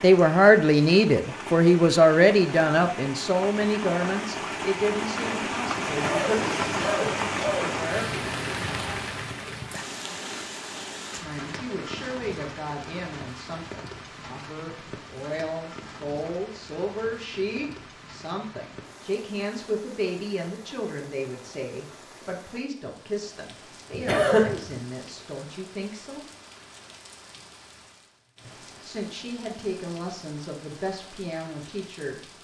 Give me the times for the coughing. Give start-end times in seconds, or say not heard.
5.8-7.9, 23.9-24.8.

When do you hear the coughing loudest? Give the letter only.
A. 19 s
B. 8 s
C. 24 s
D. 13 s
C.